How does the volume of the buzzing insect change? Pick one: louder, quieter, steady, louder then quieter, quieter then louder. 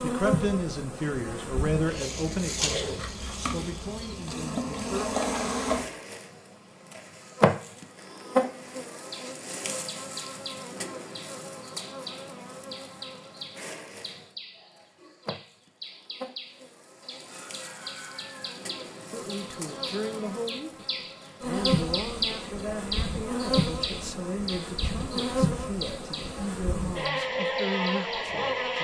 quieter then louder.